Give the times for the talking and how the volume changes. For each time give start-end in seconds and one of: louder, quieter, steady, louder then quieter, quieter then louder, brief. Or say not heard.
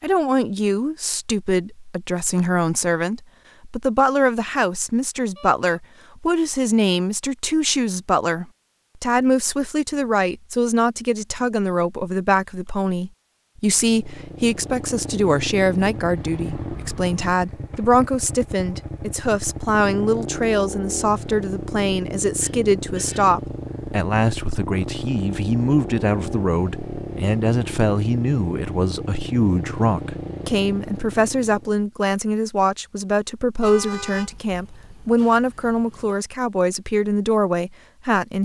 0.0-38.3 steady.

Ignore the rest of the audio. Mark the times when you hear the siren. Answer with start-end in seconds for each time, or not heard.
not heard.